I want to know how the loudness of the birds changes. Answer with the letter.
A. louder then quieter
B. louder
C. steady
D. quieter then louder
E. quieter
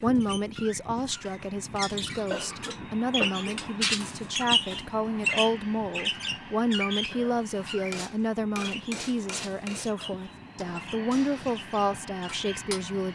A.